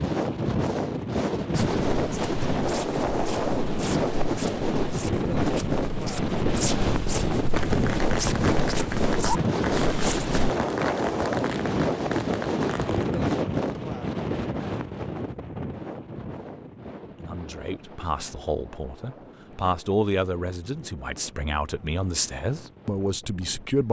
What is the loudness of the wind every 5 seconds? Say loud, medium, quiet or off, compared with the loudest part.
loud, loud, loud, quiet, quiet.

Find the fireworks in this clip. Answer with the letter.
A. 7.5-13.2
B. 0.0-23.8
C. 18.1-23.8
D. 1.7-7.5
A.